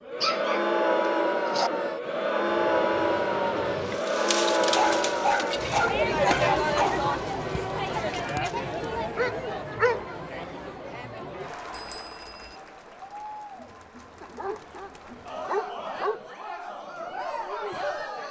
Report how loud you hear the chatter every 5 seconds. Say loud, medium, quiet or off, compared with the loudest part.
loud, loud, quiet, medium.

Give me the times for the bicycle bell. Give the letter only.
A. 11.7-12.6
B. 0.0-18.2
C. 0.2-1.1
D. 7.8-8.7
A.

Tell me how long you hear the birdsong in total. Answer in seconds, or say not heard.
not heard.